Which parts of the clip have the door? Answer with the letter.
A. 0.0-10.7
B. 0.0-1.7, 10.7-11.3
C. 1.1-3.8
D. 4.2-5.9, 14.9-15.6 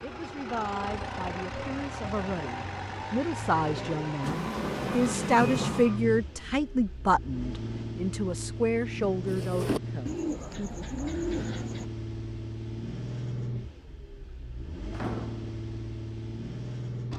D.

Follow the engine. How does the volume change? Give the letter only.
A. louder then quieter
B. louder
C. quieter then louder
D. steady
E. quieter
D.